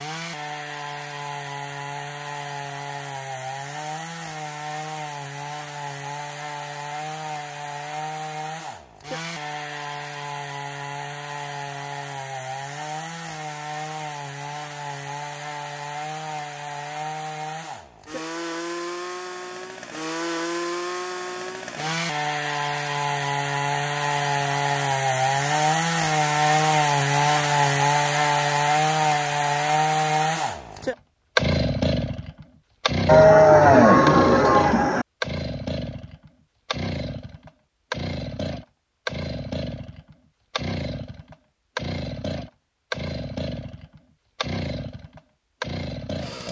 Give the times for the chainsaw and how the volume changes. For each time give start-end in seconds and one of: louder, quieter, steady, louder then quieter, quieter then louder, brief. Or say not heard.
0.0-46.4 louder then quieter.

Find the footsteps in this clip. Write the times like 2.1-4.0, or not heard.
not heard.